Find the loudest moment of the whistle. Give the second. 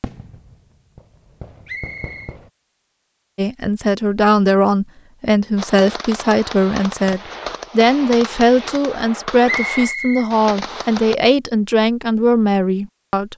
10 s.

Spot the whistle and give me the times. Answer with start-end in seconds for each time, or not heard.
1.6-2.4, 9.4-10.9.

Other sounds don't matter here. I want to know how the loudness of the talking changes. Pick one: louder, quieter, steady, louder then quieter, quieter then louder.
steady.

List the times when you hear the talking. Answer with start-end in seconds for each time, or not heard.
3.4-13.3.